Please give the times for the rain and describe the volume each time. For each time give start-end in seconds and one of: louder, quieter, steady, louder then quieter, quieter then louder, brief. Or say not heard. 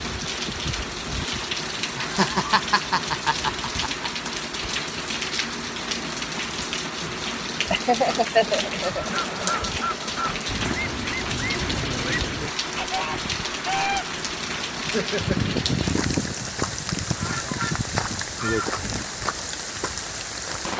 0.0-20.7 steady.